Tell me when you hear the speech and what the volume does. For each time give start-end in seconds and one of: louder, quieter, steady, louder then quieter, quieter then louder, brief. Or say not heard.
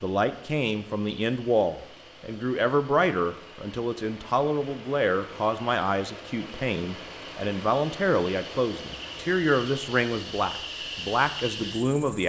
0.0-12.2 steady.